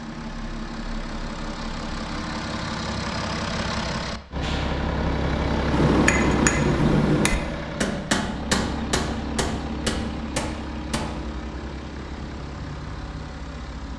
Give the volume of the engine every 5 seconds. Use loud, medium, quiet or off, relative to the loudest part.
loud, loud, medium.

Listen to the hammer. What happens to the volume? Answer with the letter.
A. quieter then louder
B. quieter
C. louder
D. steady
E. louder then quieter
B.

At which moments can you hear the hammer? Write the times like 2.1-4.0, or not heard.
5.7-11.3.